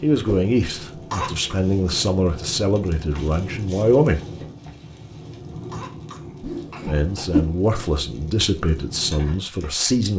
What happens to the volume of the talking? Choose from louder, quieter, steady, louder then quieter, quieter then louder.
steady.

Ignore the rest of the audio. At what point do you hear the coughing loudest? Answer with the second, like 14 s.
1 s.